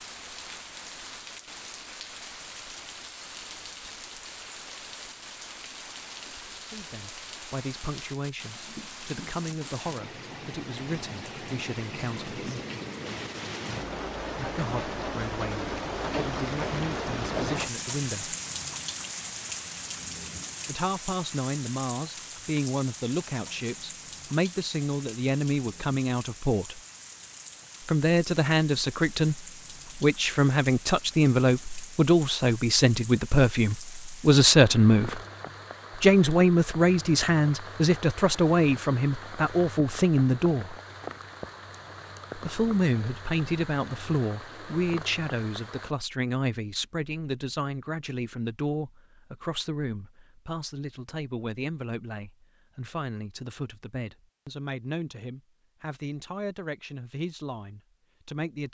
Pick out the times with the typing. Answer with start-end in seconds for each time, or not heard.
not heard.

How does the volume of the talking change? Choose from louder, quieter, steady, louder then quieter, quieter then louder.
louder then quieter.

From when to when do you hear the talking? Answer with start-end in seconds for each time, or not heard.
6.6-12.3, 14.3-18.4, 20.6-26.8, 27.9-35.2, 36.0-40.8, 42.4-58.6.